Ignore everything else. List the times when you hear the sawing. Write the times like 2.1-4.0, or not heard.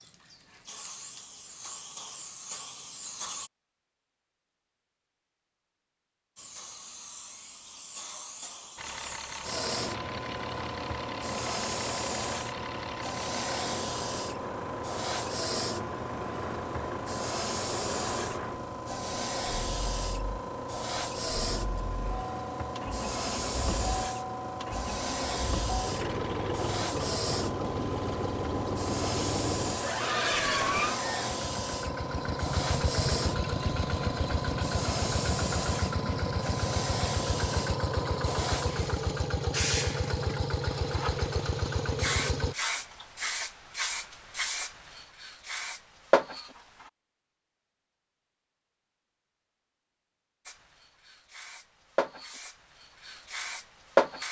not heard.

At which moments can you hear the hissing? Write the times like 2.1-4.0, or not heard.
0.0-3.5, 6.3-46.9, 50.5-54.2.